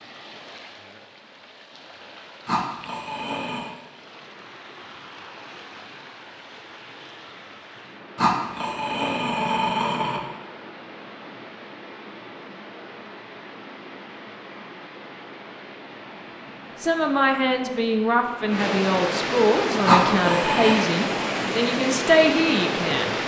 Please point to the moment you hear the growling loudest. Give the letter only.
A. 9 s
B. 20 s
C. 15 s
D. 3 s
B.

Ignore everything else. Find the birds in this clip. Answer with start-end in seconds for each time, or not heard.
not heard.